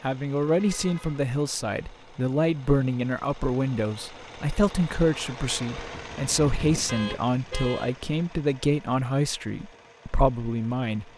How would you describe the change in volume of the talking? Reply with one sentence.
The loudness of the talking stays about the same.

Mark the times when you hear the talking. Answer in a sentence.
The talking can be heard from 0.0 to 11.1 s.